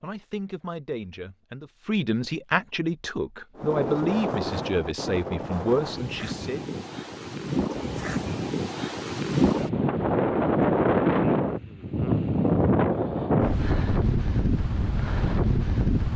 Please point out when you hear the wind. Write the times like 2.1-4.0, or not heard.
3.5-16.1.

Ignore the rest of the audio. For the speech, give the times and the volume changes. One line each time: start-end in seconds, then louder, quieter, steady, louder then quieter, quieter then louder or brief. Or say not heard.
0.0-6.6 louder.